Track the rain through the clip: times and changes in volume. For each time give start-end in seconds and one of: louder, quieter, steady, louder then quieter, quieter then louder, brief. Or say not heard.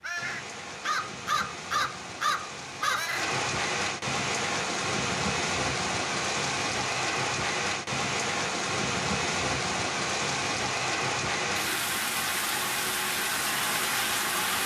0.0-14.6 louder.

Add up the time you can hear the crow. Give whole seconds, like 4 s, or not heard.
3 s.